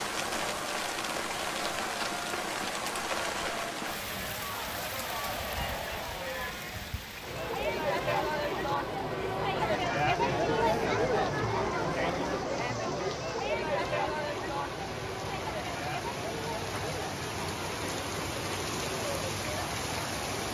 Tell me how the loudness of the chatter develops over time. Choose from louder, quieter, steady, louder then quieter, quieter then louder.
louder then quieter.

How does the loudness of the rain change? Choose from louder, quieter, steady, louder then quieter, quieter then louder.
quieter then louder.